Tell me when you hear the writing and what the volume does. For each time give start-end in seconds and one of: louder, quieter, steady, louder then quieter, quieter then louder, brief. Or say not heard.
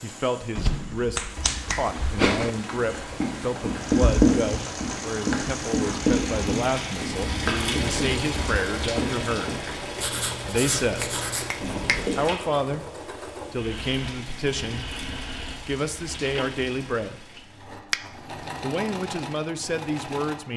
2.7-12.2 quieter.